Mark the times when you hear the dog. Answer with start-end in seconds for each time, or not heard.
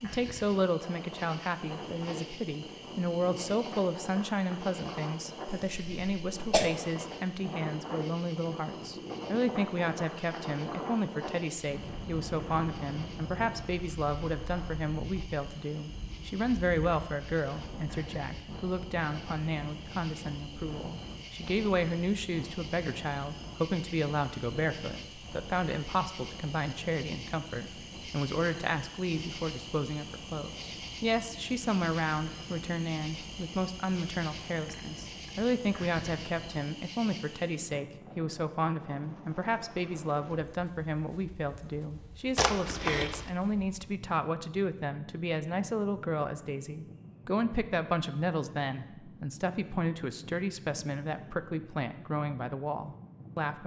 not heard.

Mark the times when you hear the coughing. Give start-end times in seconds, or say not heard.
5.5-6.7, 42.4-43.3.